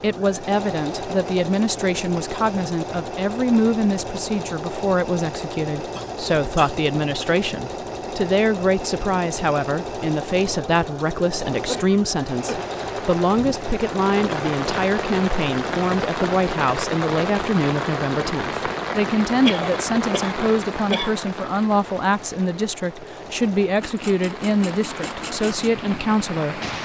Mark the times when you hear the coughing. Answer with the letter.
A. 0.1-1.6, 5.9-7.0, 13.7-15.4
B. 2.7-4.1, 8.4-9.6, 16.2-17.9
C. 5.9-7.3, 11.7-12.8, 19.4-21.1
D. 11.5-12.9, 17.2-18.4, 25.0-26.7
C.